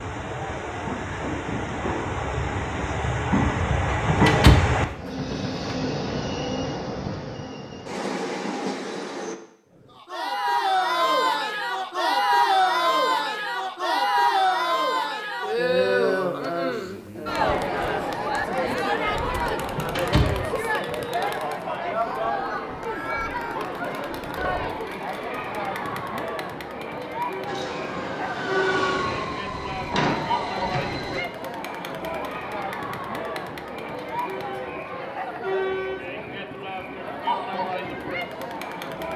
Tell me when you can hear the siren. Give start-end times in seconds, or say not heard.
not heard.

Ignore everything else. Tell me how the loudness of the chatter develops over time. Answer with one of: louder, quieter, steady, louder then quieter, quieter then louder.
quieter.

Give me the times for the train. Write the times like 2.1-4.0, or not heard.
0.0-9.4, 27.4-31.2.